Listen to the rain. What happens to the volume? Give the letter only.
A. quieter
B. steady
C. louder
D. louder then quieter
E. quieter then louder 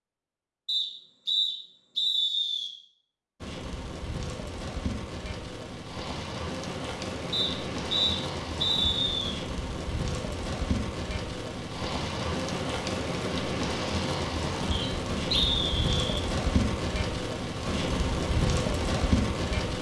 C.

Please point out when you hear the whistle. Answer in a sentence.
You can hear the whistle from 0.7 to 2.7 s, from 7.3 to 9.3 s and from 14.7 to 16.2 s.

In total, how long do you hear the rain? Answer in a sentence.
The rain can be heard for 16 seconds in total.